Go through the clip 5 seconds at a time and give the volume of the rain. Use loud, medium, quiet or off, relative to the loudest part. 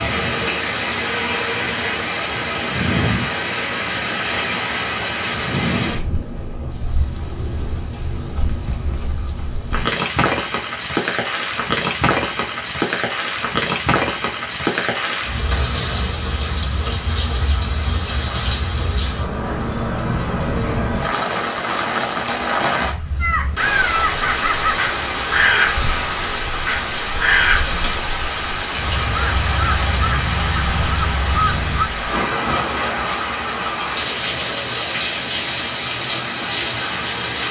loud, medium, loud, loud, loud, loud, loud, loud.